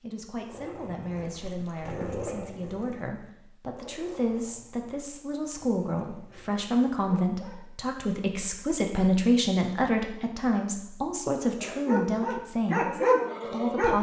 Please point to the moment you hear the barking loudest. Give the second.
13 s.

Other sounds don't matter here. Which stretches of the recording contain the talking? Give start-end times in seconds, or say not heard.
0.0-13.9.